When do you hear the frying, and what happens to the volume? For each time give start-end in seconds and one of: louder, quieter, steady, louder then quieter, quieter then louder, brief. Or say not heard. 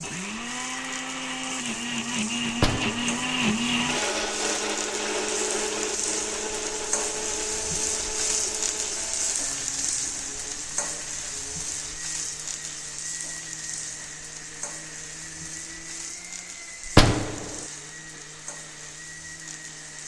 0.0-20.0 louder then quieter.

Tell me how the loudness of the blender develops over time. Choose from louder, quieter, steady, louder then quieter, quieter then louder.
quieter.